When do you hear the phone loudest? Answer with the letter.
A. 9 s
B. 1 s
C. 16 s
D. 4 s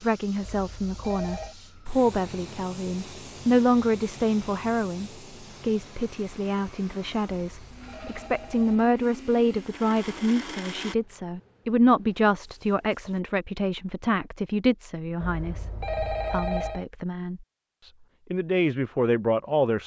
C.